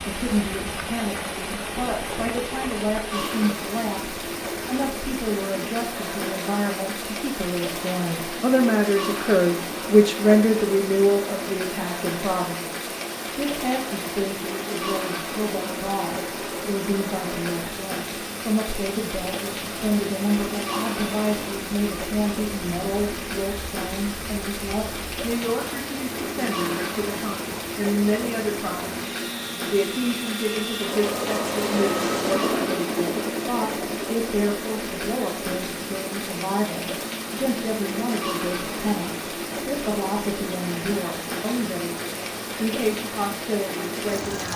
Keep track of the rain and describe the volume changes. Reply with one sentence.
The loudness of the rain stays about the same.